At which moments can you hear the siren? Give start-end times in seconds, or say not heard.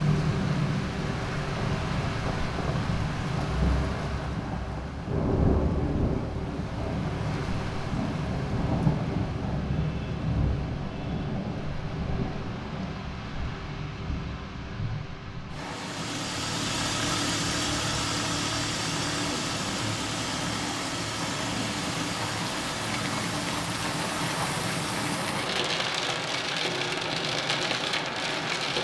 not heard.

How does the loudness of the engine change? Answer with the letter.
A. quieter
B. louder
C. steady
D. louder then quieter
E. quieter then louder
A.